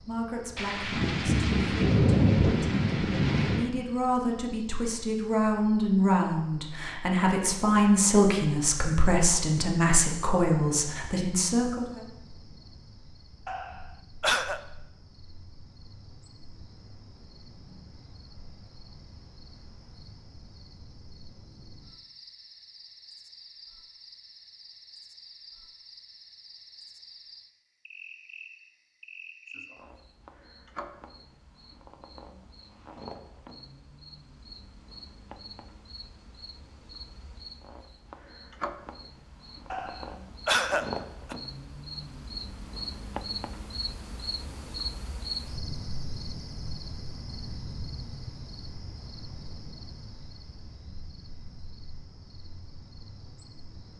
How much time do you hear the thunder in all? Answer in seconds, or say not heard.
3 s.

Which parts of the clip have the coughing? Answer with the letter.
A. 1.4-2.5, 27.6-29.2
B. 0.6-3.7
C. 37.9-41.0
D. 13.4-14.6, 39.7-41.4
D.